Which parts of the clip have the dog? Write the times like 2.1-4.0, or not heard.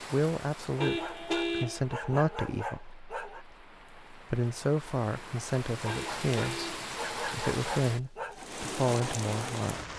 0.8-3.5, 5.8-8.4.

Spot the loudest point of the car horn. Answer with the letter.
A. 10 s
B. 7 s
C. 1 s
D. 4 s
C.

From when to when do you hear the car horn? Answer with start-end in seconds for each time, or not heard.
0.8-1.8, 5.8-6.8.